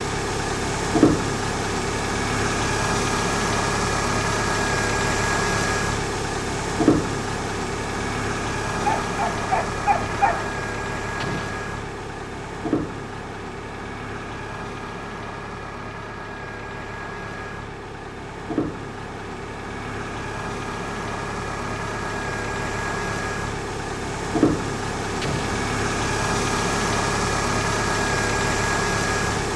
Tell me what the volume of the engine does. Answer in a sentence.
The loudness of the engine goes down, then up.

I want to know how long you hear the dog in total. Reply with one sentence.
You can hear the dog for 2 seconds altogether.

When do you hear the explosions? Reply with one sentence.
You can hear the explosions from 11.2 to 11.6 s and from 25.2 to 25.6 s.